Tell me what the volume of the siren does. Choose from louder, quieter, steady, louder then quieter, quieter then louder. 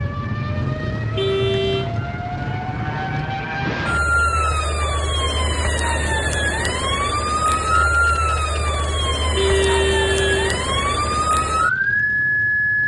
louder.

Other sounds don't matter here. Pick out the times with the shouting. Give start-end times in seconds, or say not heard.
not heard.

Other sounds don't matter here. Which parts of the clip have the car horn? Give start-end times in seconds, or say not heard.
1.1-1.9, 9.3-10.6.